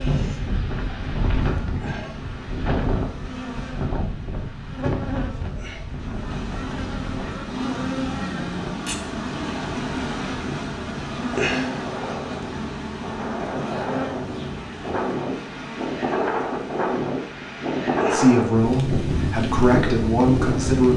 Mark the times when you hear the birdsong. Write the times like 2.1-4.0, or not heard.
not heard.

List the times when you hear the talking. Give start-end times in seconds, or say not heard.
18.1-20.9.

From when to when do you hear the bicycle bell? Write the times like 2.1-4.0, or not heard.
not heard.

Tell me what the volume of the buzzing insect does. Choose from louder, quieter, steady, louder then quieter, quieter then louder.
louder then quieter.